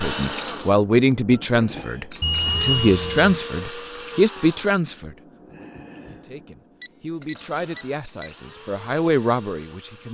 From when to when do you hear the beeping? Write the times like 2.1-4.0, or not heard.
2.2-3.4, 6.8-8.3.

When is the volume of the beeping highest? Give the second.
3 s.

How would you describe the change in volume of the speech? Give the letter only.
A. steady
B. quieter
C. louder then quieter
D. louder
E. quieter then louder
E.